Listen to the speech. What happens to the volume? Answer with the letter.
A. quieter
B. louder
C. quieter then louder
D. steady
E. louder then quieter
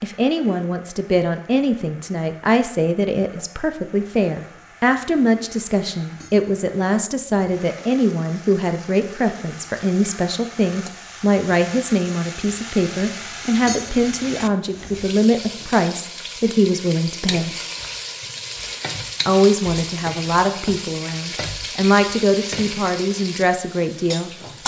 D.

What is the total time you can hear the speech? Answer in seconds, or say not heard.
23 s.